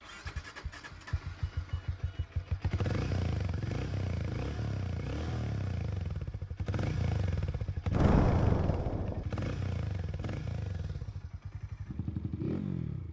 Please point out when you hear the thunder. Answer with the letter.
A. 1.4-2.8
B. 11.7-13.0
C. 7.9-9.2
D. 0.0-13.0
C.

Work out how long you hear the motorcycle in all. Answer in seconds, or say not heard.
13 s.